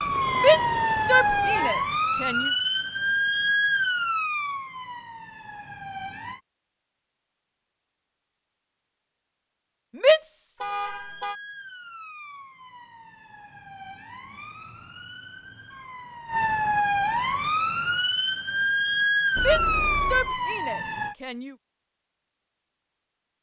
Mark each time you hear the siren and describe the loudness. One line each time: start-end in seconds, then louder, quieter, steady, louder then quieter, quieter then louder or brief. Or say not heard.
0.0-6.4 quieter
10.8-21.1 louder.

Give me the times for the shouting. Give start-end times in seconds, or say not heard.
0.3-2.5, 9.9-10.6, 19.4-21.6.